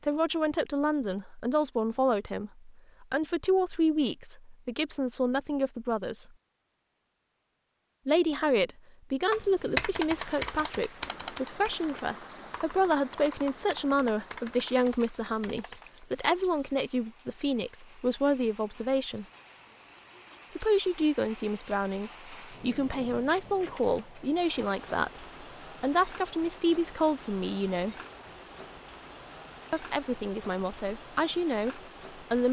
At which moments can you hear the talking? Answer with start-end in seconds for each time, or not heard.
0.0-6.2, 8.1-19.2, 20.5-27.9, 29.7-32.4.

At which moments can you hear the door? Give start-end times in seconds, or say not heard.
not heard.